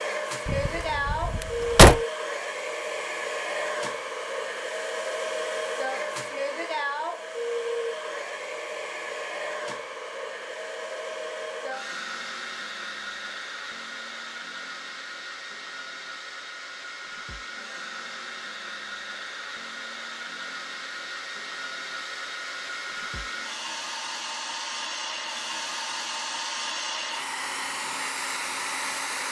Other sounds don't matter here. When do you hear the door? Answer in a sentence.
The door can be heard from 0.5 to 2.0 s.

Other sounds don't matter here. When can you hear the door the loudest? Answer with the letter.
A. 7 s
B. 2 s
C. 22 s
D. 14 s
B.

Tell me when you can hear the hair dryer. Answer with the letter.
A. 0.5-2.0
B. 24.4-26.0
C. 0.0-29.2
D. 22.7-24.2
C.